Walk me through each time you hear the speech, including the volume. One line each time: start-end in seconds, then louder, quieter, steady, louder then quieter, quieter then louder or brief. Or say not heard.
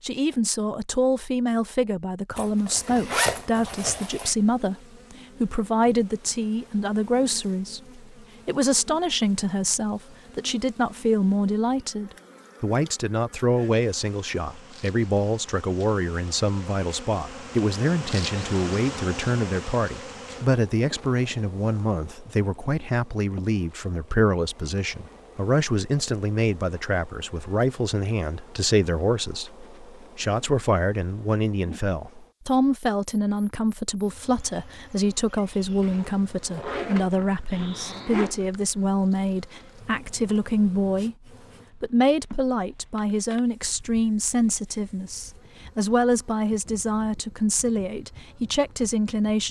0.0-41.1 steady
41.8-49.4 steady.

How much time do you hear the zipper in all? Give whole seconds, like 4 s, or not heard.
5 s.